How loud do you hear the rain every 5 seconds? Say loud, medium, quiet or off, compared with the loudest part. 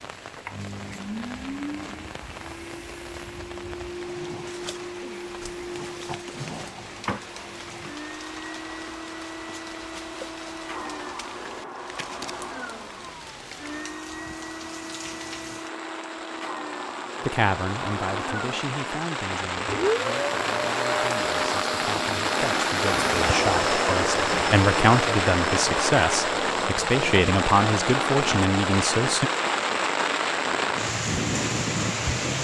quiet, quiet, quiet, medium, loud, loud, loud.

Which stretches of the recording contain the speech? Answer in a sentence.
You can hear the speech from 17.2 to 29.3 s.